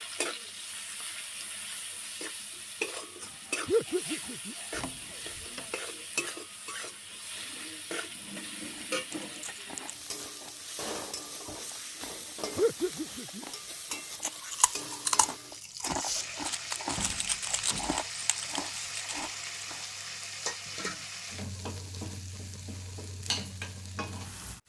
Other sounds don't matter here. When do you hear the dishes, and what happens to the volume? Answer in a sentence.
You can't hear the dishes here.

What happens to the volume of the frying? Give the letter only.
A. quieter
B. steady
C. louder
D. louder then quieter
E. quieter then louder
B.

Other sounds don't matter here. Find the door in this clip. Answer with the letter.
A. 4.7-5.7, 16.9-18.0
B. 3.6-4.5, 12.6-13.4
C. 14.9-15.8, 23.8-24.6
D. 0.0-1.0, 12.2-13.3
A.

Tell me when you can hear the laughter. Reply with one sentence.
You can hear the laughter from 3.6 to 4.5 s and from 12.6 to 13.4 s.